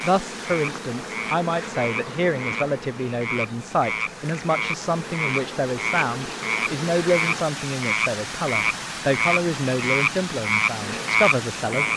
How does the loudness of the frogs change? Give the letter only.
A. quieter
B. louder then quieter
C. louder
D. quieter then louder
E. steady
C.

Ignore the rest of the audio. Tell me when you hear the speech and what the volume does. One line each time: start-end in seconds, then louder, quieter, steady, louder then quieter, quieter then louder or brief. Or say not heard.
0.0-11.9 steady.